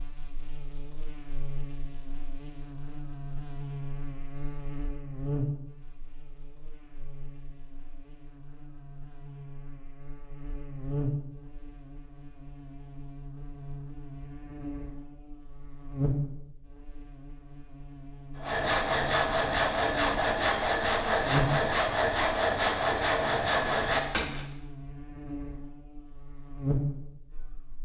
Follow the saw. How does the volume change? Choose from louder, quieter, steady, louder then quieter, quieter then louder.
steady.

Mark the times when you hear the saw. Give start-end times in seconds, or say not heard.
18.4-24.4.